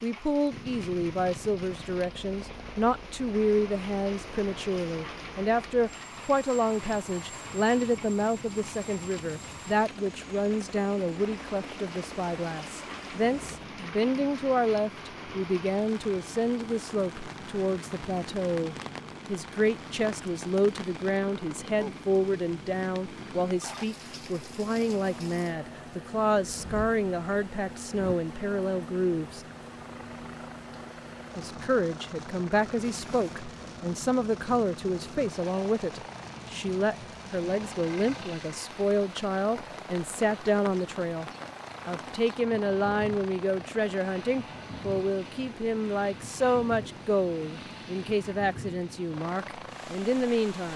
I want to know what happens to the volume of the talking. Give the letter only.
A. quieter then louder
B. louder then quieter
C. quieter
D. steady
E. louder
D.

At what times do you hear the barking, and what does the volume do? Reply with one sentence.
The barking can't be heard in this clip.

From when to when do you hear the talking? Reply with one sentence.
The talking can be heard from 0.0 to 29.4 s and from 31.4 to 50.7 s.